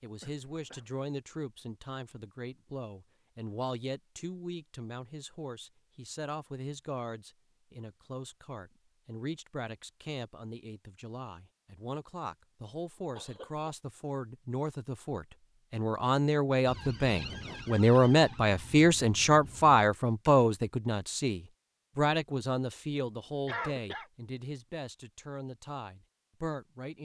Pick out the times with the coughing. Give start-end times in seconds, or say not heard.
0.2-1.1, 13.2-13.8, 23.4-24.1.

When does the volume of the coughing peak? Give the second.
24 s.